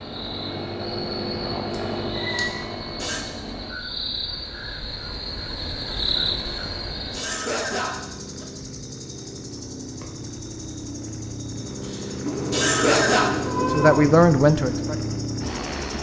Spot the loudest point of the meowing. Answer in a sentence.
The volume of the meowing peaks at 14 seconds.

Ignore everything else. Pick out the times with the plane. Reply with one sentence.
You can hear the plane from 0.0 to 3.8 s and from 6.0 to 15.9 s.